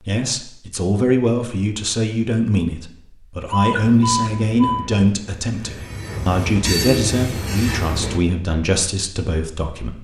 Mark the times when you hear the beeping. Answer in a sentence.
You can hear the beeping from 3.5 to 4.9 s.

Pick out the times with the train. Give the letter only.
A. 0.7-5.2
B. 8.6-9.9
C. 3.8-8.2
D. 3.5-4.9
C.